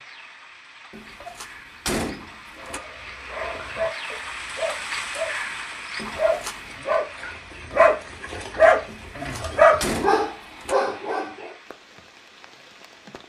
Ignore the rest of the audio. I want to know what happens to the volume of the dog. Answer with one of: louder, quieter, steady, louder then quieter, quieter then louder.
louder.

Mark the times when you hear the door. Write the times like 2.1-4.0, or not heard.
0.9-2.8, 6.0-6.8, 8.8-10.8.